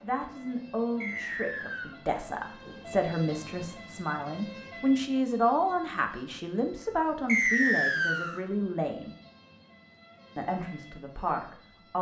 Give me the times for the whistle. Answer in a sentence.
The whistle can be heard from 1.0 to 1.9 s and from 7.2 to 8.4 s.